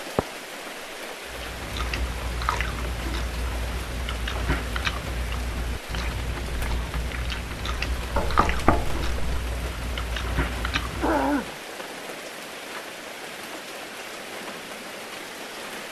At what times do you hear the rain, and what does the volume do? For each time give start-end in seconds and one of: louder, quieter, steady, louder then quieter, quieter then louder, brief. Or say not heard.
0.0-15.8 steady.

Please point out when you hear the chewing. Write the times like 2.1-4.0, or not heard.
1.2-11.3.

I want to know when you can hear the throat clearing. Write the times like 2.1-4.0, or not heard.
10.7-11.5.